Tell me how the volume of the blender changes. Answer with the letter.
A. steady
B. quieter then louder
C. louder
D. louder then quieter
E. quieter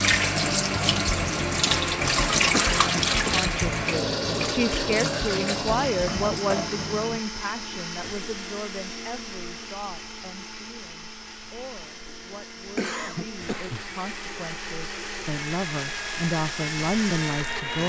B.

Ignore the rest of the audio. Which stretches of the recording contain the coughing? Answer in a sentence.
You can hear the coughing from 2.5 to 3.4 s and from 12.8 to 13.8 s.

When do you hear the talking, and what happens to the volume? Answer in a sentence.
The talking can be heard from 3.2 to 17.8 s, getting quieter then louder.